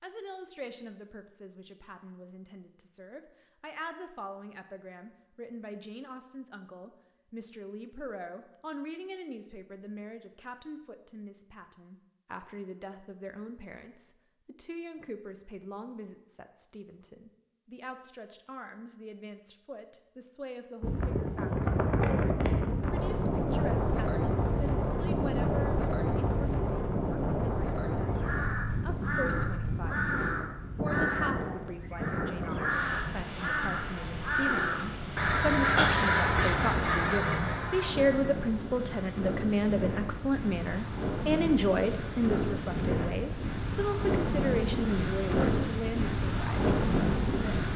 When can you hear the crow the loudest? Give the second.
36 s.